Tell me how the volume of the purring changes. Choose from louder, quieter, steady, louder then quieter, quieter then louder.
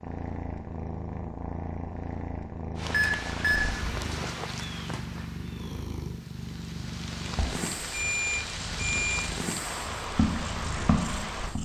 steady.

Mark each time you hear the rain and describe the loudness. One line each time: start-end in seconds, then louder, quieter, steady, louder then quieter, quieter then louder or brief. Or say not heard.
2.8-11.5 quieter then louder.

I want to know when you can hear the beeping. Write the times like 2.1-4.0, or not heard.
2.9-3.7, 7.3-9.2.